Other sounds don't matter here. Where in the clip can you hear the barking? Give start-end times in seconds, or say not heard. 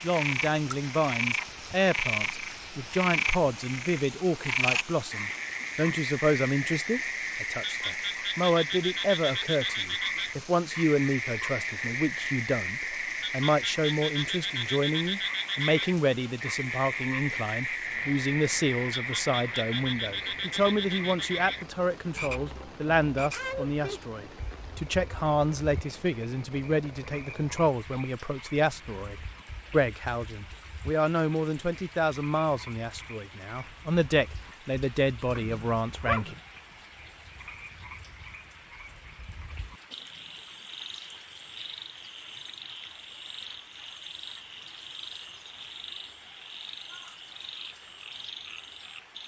35.4-36.4.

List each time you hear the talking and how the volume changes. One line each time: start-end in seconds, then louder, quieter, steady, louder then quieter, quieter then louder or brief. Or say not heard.
0.0-36.4 steady.